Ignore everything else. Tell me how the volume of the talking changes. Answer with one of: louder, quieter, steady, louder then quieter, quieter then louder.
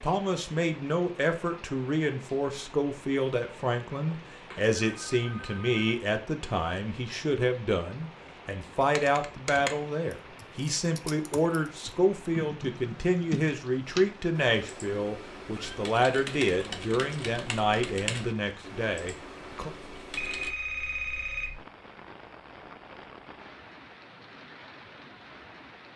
steady.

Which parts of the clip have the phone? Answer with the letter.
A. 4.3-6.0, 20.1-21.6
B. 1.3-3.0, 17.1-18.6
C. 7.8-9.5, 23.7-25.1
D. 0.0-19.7
A.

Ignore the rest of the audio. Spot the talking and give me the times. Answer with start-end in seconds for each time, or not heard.
0.0-19.7.